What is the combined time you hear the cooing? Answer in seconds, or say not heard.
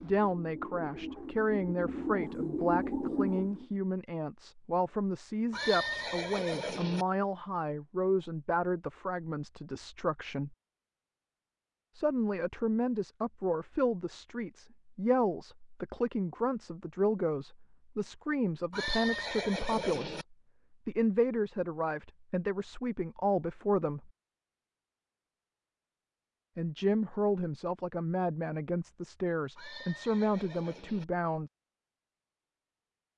4 s.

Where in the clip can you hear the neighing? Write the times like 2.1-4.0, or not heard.
5.5-7.0, 18.7-20.2, 29.6-31.1.